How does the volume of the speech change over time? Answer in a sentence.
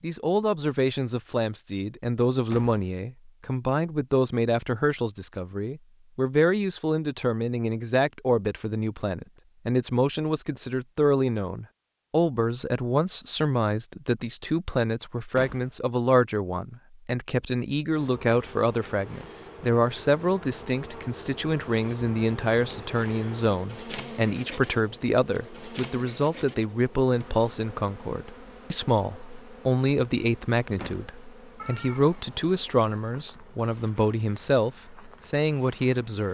The loudness of the speech stays about the same.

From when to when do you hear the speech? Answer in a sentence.
You can hear the speech from 0.0 to 36.2 s.